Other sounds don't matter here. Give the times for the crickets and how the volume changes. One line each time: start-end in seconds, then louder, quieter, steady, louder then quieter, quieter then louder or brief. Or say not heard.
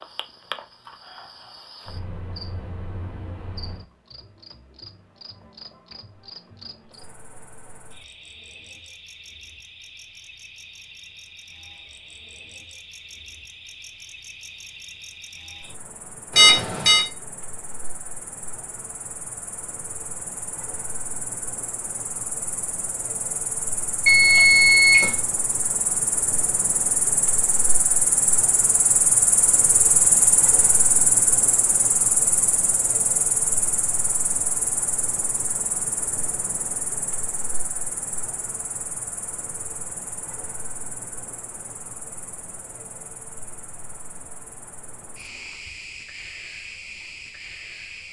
0.0-48.0 louder then quieter.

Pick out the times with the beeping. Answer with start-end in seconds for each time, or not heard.
16.4-17.1, 24.1-25.1.